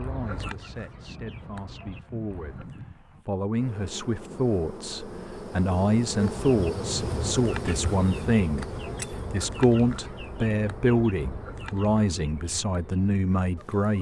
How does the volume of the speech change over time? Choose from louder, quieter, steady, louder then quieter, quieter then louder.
louder.